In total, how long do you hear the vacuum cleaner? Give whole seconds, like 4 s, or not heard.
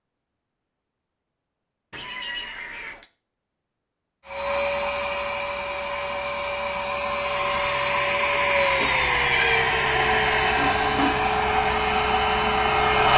9 s.